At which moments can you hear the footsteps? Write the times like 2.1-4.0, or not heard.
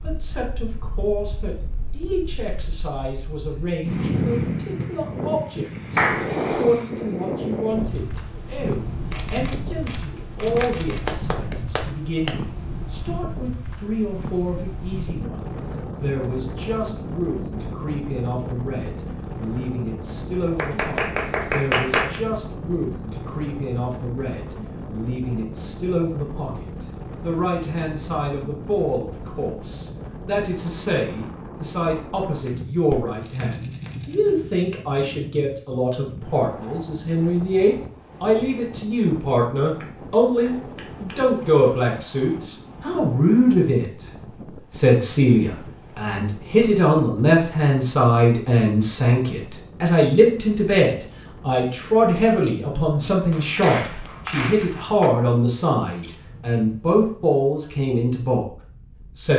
not heard.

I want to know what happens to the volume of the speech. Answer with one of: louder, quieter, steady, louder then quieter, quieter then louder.
louder.